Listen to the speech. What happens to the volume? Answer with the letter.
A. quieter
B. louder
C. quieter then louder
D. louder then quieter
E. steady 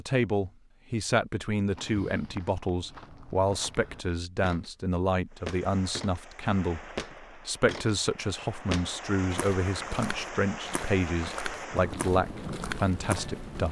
E.